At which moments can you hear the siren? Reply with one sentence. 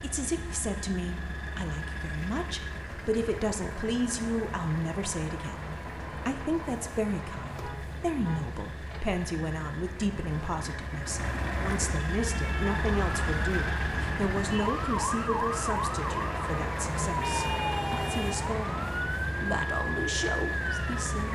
The siren can be heard from 12.2 to 21.3 s.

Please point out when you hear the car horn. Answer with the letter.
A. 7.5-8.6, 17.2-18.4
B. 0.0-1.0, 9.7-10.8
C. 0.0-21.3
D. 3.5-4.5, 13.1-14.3
A.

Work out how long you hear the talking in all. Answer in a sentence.
The talking can be heard for 21 seconds in total.